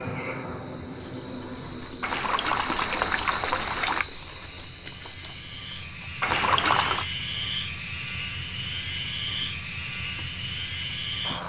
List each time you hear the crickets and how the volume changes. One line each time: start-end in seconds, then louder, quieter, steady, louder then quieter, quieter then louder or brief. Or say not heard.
0.0-11.4 louder then quieter.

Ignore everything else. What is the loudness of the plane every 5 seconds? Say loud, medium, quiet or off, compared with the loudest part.
medium, loud, loud.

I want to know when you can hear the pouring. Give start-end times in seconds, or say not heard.
2.0-4.0, 6.2-7.0.